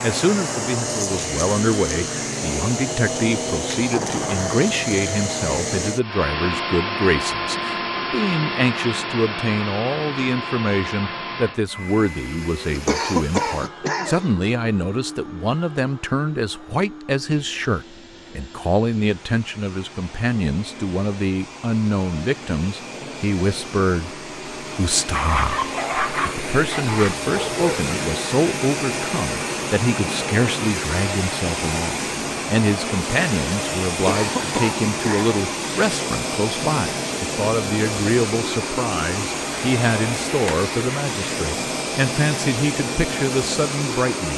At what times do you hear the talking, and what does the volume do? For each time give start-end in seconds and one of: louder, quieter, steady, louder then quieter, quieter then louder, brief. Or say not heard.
0.0-25.6 steady
26.2-44.3 steady.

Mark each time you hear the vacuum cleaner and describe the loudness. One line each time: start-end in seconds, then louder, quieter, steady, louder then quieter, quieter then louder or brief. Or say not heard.
0.0-44.3 quieter then louder.